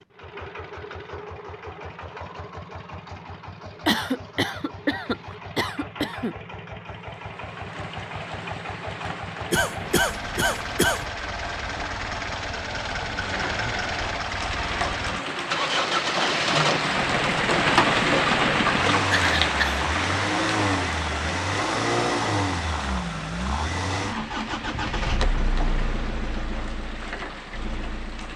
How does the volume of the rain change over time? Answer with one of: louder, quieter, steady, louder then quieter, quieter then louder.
louder then quieter.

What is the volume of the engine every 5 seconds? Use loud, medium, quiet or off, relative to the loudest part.
quiet, medium, medium, loud, loud, medium.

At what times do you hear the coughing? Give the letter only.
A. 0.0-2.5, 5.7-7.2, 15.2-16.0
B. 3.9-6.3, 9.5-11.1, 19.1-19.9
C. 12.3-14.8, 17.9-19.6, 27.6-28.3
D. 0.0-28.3
B.